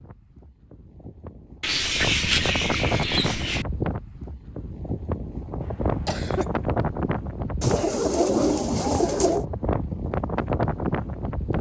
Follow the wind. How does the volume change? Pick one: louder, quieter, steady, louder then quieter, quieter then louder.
louder.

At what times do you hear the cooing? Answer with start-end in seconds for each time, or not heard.
1.6-3.6, 7.6-9.4.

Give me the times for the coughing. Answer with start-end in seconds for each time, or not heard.
5.6-6.6.